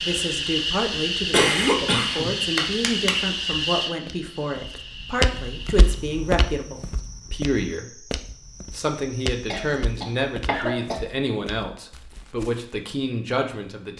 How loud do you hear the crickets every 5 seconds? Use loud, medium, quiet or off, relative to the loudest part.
loud, quiet, off.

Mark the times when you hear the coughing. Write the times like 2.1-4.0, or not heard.
1.3-3.1, 9.5-11.0.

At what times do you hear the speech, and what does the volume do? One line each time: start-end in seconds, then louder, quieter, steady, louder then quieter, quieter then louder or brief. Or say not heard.
0.0-13.9 steady.